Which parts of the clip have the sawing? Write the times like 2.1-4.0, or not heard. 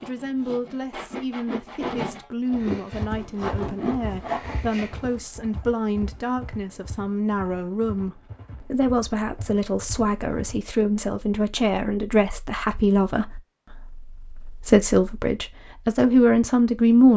0.0-5.2.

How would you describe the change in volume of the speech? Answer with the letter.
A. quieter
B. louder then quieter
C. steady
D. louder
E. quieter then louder
D.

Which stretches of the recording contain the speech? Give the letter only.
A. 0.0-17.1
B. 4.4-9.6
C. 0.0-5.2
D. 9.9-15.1
A.